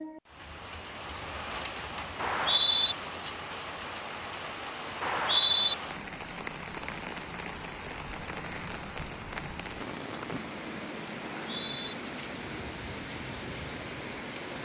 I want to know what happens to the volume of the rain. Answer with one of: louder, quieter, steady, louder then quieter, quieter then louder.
steady.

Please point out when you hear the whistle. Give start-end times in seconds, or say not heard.
2.1-3.0, 5.0-5.8, 11.2-11.9.